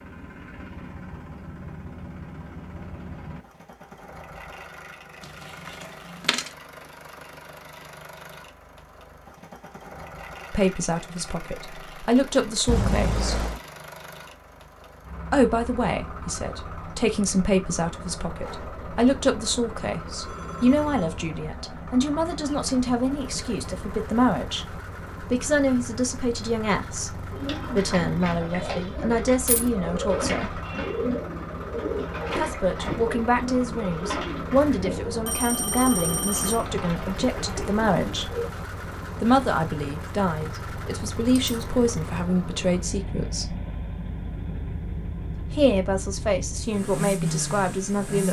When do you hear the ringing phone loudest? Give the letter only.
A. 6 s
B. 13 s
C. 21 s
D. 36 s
B.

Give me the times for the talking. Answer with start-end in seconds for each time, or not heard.
10.5-13.4, 15.3-30.6, 32.4-38.4, 39.2-43.5, 45.4-48.2.